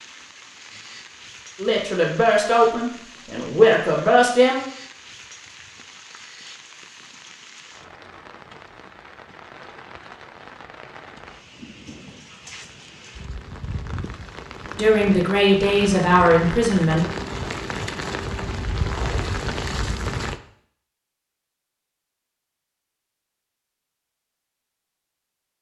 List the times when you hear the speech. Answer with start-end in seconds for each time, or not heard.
1.6-4.6, 14.8-17.1.